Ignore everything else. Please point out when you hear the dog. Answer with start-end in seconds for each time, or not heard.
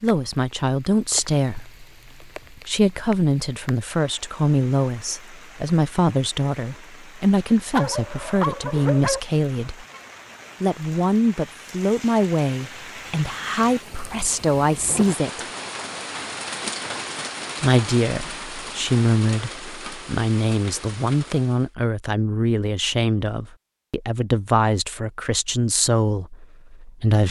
7.7-9.2.